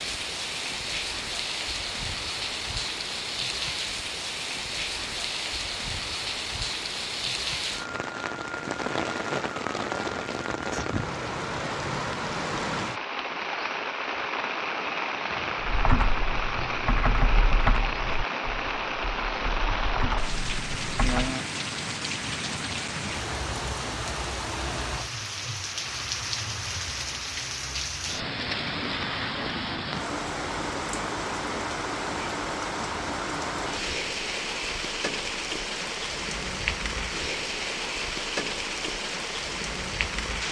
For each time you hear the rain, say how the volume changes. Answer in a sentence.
You can hear the rain from 0.0 to 40.4 s, at a steady volume.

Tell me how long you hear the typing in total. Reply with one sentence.
You can hear the typing for 6 seconds altogether.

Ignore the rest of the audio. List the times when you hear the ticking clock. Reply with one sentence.
You can't hear the ticking clock here.